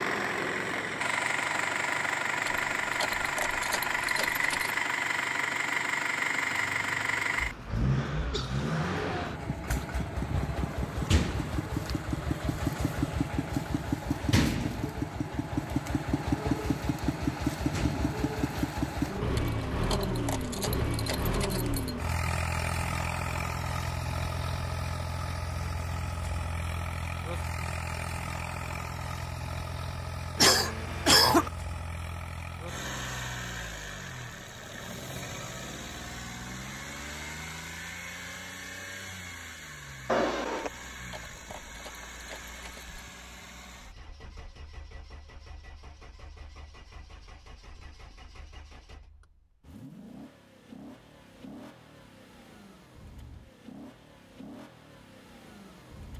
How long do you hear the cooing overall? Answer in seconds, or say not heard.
not heard.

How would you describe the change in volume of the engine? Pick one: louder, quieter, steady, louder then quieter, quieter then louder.
quieter.